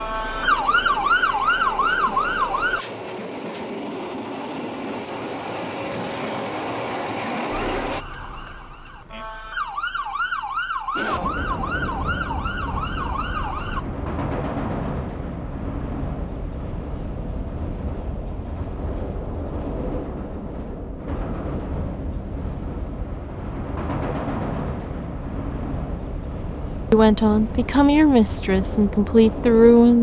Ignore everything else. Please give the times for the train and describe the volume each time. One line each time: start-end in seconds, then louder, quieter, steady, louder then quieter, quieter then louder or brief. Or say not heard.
0.0-8.1 louder
10.9-29.9 steady.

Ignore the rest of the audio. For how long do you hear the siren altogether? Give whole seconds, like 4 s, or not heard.
9 s.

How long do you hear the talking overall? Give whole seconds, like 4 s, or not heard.
3 s.